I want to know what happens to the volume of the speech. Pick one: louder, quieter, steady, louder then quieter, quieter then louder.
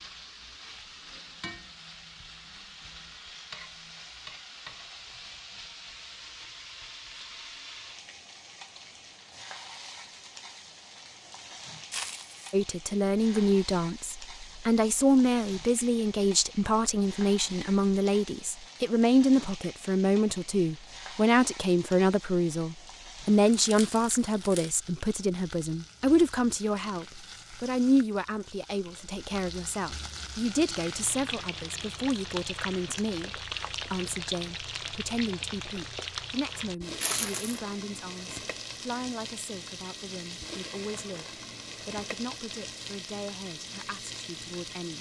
quieter.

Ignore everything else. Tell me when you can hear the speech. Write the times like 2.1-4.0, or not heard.
12.5-44.9.